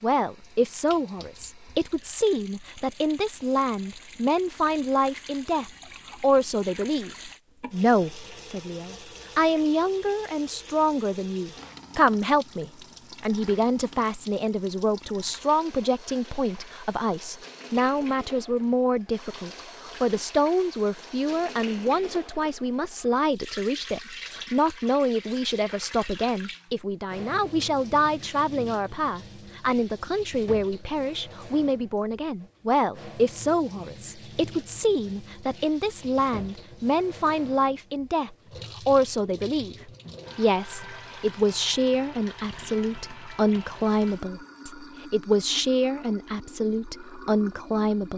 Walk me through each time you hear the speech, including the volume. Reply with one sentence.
The speech can be heard from 0.0 to 48.1 s, at a steady volume.